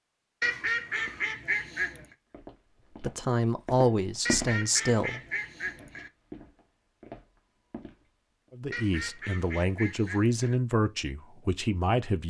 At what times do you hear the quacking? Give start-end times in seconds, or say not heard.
0.4-2.0, 4.2-6.1, 8.7-10.6.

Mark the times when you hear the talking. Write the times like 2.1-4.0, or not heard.
3.0-5.2, 8.5-12.2.